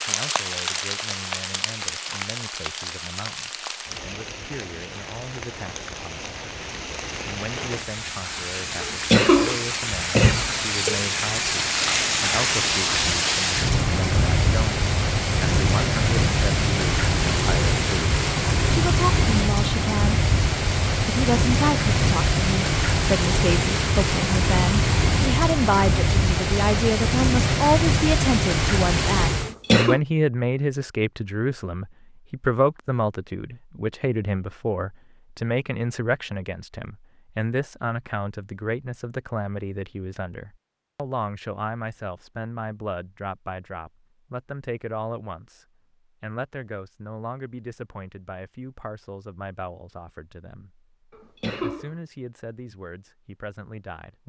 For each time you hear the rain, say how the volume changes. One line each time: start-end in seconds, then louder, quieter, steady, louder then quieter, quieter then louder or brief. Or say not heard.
0.0-29.6 louder.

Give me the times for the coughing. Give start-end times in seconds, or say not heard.
8.8-11.0, 29.4-30.0, 51.1-52.0.